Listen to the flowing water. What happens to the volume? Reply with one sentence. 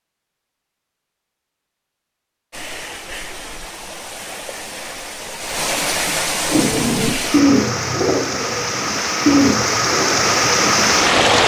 The volume of the flowing water goes up.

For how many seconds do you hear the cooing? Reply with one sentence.
The cooing can be heard for 5 seconds in total.